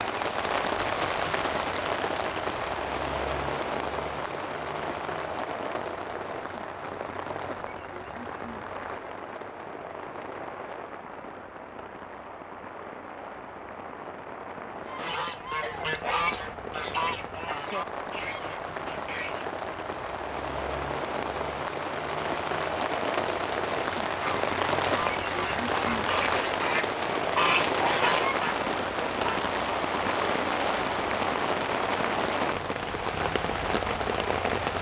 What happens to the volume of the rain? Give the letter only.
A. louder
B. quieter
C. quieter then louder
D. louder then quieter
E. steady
C.